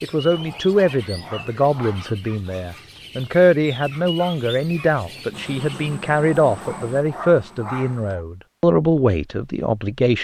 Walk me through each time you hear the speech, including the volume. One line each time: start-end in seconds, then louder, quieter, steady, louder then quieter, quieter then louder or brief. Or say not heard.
0.0-10.1 steady.